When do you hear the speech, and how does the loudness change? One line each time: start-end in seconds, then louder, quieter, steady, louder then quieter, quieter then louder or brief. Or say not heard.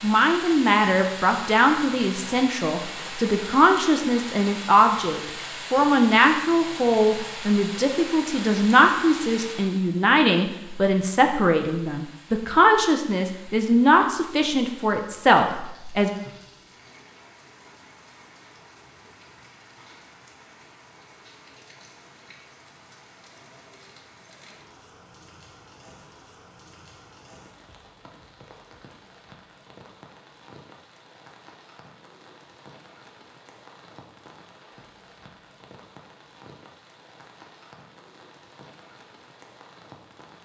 0.0-16.1 steady.